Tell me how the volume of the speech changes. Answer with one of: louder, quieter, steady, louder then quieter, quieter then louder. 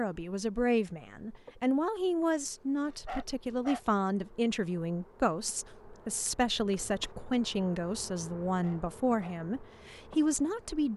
steady.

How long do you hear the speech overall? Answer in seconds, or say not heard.
11 s.